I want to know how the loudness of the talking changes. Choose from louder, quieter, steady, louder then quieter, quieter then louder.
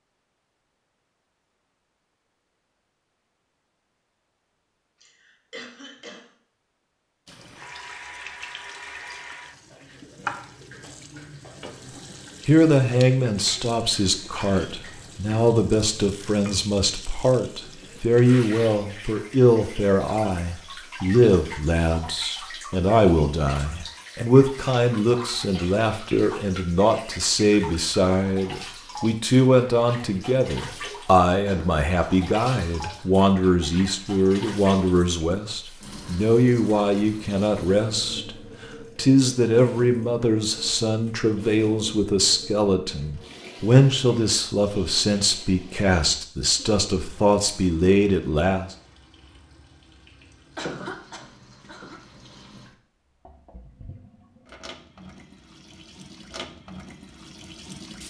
steady.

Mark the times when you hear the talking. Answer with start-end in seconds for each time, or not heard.
12.4-38.3, 39.0-48.7.